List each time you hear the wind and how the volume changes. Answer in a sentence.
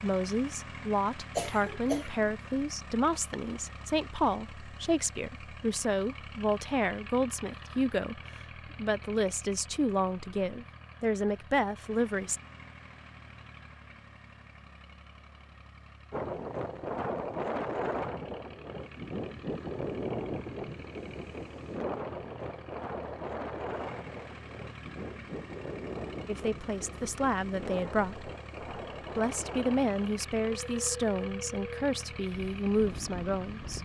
You can hear the wind from 16.1 to 33.8 s, getting quieter.